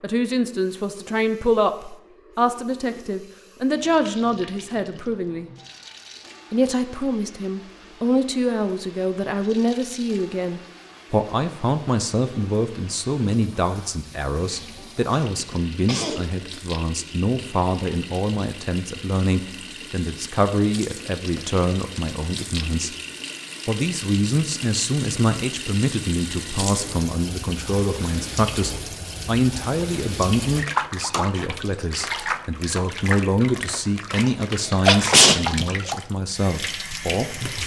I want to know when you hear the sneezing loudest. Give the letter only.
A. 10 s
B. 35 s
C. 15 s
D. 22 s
B.